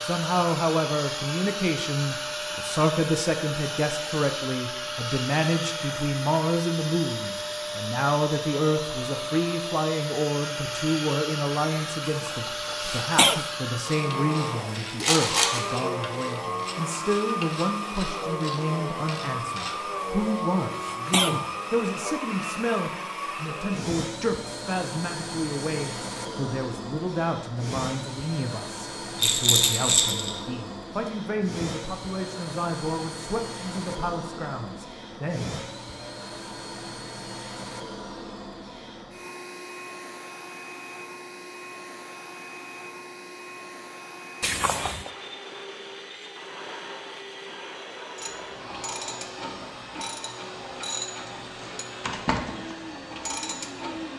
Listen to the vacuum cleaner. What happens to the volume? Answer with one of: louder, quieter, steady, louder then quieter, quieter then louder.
quieter.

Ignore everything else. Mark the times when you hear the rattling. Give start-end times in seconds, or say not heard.
15.0-15.7, 29.1-30.4.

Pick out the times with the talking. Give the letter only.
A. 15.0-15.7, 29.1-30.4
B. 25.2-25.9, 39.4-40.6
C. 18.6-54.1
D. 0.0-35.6
D.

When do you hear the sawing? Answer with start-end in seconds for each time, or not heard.
not heard.